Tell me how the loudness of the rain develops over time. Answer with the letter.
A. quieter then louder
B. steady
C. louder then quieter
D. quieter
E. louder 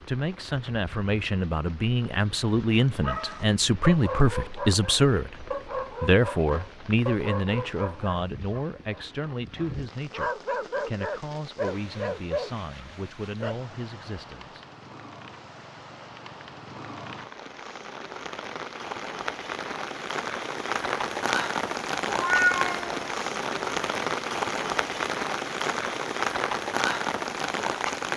E.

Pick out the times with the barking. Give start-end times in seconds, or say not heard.
3.0-13.6.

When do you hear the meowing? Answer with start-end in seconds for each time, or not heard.
22.1-23.1.